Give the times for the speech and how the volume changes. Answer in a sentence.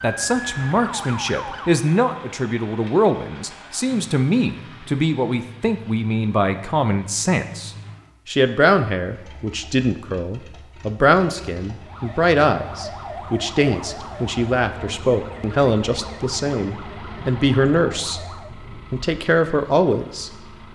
The speech can be heard from 0.0 to 20.4 s, at a steady volume.